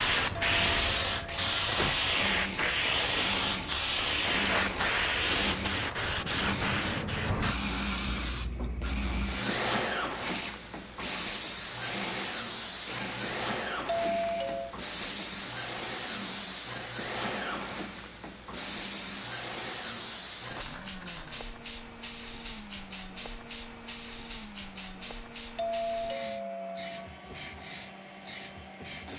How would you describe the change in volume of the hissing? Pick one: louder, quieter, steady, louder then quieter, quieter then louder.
quieter.